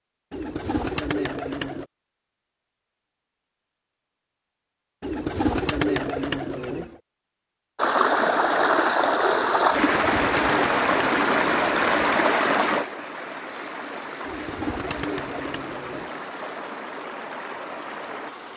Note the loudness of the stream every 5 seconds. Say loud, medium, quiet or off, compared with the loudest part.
off, loud, loud, quiet.